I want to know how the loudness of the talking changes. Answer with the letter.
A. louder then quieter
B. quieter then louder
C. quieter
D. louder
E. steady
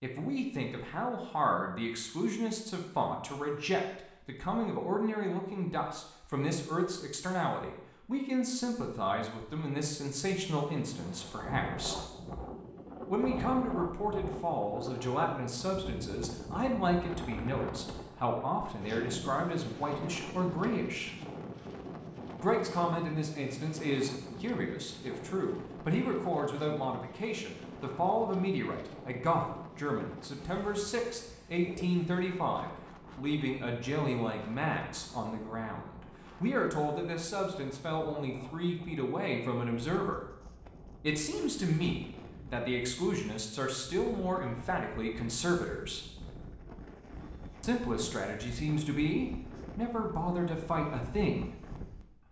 E.